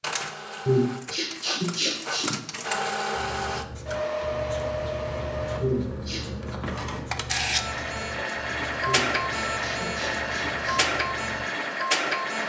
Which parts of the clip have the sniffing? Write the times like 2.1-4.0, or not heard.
0.7-2.4, 5.6-6.2, 8.8-10.8.